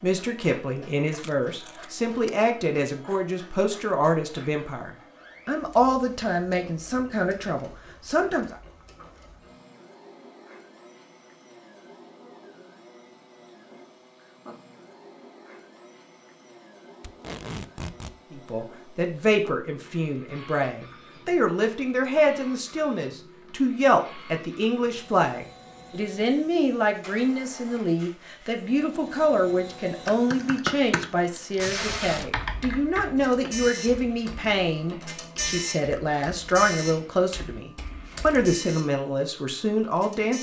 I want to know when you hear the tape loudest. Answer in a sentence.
The loudest moment of the tape is at 32 seconds.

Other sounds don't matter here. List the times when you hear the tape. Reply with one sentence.
You can hear the tape from 1.2 to 2.3 s, from 17.0 to 18.1 s and from 31.6 to 32.3 s.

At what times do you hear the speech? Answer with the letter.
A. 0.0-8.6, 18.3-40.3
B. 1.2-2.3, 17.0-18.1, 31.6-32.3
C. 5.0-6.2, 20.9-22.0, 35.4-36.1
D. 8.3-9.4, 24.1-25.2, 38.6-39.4
A.